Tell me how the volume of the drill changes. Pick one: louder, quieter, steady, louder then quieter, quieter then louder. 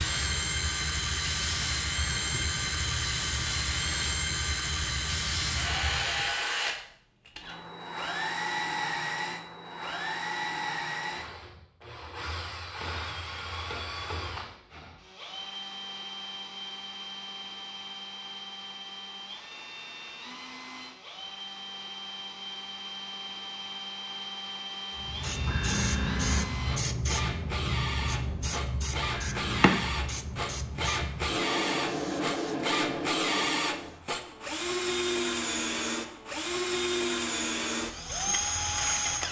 quieter then louder.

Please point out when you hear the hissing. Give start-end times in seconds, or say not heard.
0.0-6.3, 25.0-34.0.